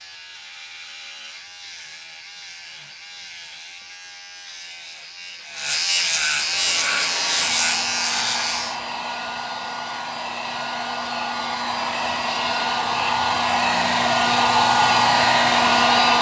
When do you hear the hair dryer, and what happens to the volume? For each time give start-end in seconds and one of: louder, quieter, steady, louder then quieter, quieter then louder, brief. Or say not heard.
6.3-16.1 louder.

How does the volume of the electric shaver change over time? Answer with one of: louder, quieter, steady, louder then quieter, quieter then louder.
louder.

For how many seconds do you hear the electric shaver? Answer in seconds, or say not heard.
9 s.